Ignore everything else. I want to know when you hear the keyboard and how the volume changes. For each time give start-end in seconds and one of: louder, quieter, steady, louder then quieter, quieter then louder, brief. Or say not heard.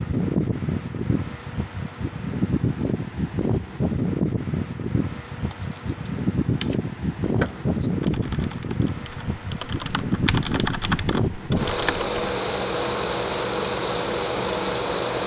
5.4-12.1 quieter then louder.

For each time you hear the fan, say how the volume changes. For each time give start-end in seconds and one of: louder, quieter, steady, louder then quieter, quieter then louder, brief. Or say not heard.
0.0-15.2 steady.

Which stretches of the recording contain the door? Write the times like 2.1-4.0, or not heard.
7.2-7.8.